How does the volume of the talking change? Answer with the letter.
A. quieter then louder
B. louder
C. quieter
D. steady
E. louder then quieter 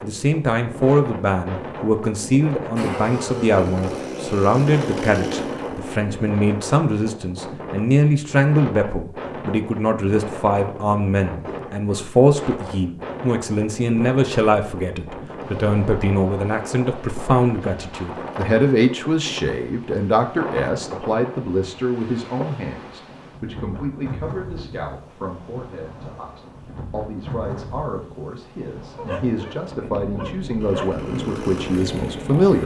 C.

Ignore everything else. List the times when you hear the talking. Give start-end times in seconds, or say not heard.
0.0-32.6.